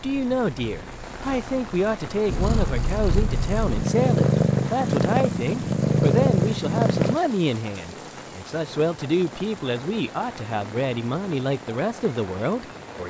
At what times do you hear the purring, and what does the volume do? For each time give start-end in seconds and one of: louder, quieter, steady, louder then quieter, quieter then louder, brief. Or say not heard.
0.0-7.2 louder.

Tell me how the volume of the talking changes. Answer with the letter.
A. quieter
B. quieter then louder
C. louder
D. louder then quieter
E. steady
E.